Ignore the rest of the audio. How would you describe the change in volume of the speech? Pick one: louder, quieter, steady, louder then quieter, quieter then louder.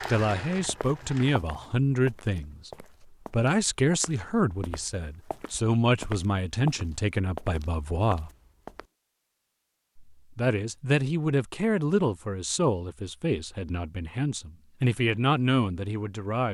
steady.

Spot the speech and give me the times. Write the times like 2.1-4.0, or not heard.
0.1-8.3, 10.1-16.4.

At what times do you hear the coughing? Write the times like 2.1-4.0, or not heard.
not heard.